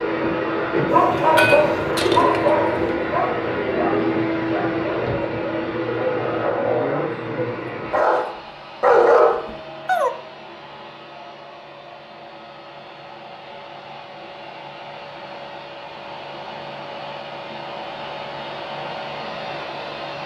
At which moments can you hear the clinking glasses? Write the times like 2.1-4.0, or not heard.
1.1-2.5.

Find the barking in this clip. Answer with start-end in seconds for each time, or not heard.
0.8-7.2, 7.9-10.1.